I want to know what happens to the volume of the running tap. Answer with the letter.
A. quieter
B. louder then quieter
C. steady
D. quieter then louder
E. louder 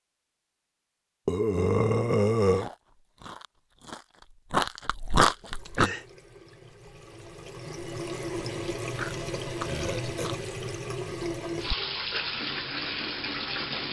E.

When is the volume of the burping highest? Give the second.
2 s.